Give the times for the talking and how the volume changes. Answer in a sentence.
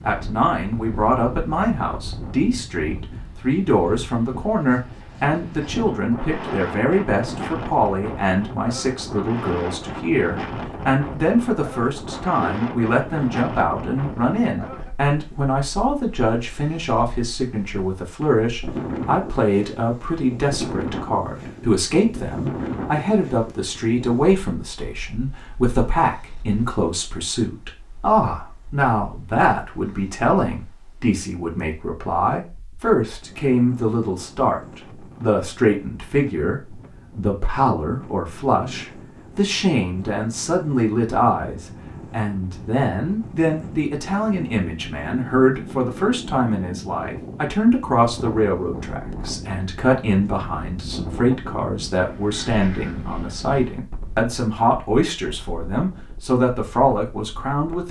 You can hear the talking from 0.0 to 57.8 s, at a steady volume.